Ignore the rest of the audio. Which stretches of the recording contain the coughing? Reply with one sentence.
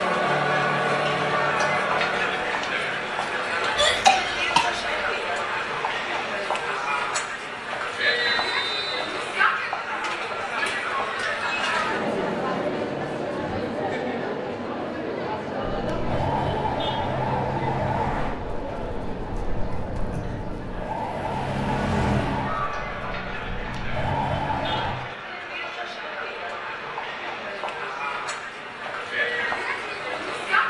You can hear the coughing from 3.8 to 5.1 s.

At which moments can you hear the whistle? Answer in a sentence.
You can hear the whistle from 8.0 to 9.1 s.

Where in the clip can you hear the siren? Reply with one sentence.
You can hear the siren from 15.7 to 24.9 s.